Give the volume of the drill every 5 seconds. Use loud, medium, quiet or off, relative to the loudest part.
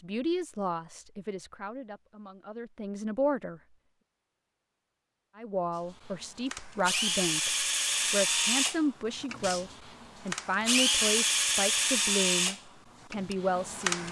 off, loud, loud.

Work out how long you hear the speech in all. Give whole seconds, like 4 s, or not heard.
12 s.